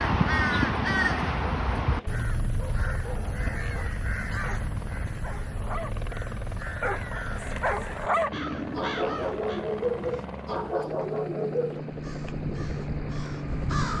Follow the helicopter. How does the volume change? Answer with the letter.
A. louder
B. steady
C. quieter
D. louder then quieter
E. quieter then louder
A.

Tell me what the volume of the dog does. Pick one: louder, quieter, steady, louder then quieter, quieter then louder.
louder.